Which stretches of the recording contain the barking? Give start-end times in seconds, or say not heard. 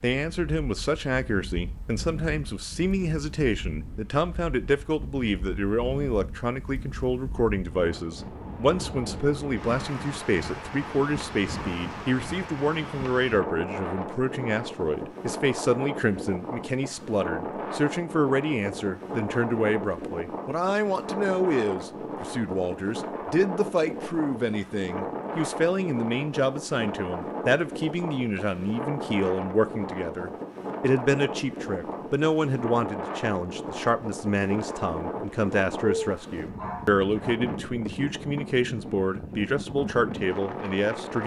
35.8-37.4.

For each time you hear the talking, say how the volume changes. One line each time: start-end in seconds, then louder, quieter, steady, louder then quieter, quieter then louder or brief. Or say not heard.
0.0-41.2 steady.